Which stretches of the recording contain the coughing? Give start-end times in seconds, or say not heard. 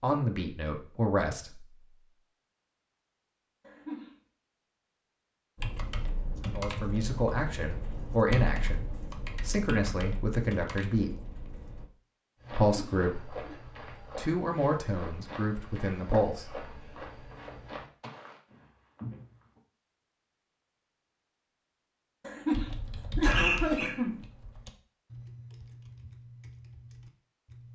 3.6-4.2, 12.7-13.6, 22.2-24.2.